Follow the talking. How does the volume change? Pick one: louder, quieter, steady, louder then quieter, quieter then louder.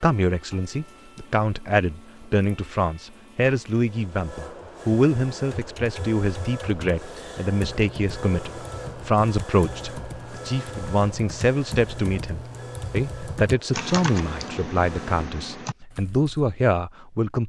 steady.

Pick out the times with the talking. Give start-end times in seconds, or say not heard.
0.0-17.4.